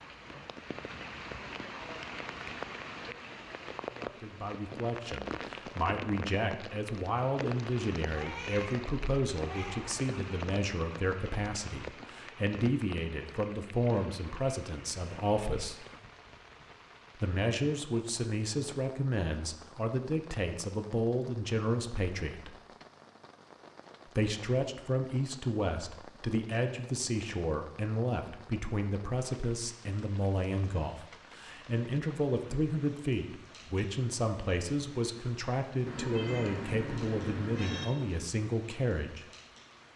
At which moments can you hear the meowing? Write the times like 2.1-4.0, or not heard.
8.1-10.1, 35.9-37.9.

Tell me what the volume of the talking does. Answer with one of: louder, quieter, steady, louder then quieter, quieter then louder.
steady.